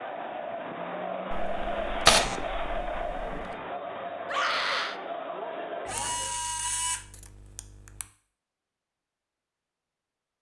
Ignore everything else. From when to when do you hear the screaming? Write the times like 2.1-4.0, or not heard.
4.2-5.0.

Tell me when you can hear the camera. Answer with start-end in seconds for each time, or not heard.
1.3-3.5, 5.8-8.1.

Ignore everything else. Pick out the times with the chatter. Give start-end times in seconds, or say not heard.
0.0-6.4.